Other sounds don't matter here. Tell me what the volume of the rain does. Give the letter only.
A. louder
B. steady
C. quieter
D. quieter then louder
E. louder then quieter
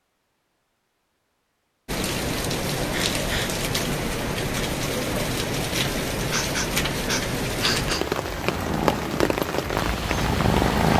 B.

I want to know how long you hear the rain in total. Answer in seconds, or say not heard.
9 s.